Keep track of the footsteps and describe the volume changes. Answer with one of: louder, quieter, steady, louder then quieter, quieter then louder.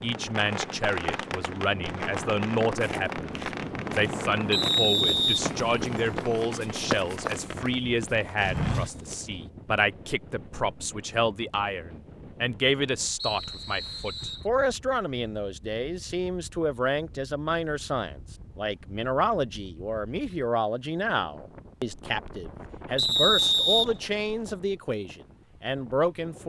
louder.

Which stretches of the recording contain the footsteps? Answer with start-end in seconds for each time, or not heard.
2.8-9.2.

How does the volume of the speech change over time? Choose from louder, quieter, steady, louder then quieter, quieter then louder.
steady.